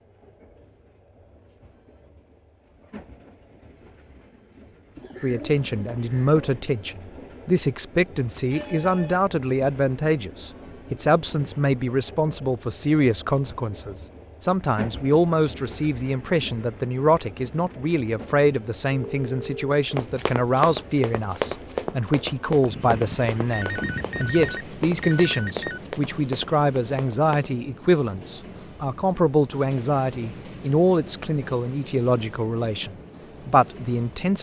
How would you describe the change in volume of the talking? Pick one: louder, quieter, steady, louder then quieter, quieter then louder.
steady.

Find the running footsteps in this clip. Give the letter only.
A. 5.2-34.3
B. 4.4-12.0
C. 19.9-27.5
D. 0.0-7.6
C.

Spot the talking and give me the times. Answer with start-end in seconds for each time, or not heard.
5.2-34.3.